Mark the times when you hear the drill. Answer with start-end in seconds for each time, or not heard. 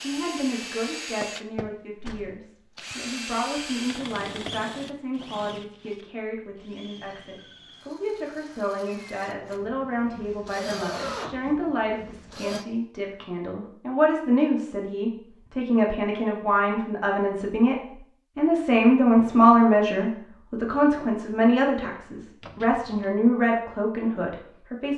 0.0-12.7.